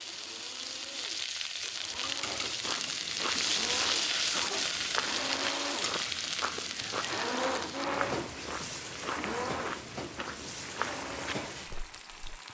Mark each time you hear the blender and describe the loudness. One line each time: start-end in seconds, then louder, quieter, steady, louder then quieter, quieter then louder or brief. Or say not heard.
0.0-12.4 louder then quieter.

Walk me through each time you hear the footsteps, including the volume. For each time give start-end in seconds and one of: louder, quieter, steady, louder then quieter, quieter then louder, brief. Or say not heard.
2.6-12.4 steady.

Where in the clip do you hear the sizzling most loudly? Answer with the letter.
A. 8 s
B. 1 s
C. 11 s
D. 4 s
D.